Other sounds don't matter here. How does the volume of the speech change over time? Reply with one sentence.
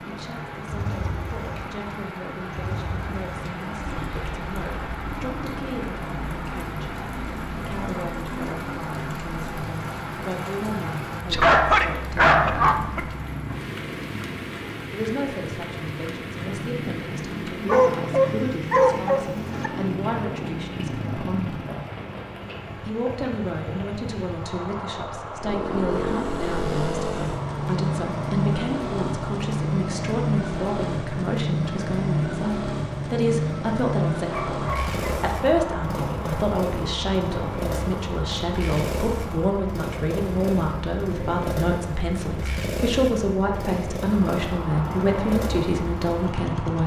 The volume of the speech goes up.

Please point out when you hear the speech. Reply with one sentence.
The speech can be heard from 0.0 to 13.0 s, from 14.9 to 21.6 s and from 22.8 to 46.8 s.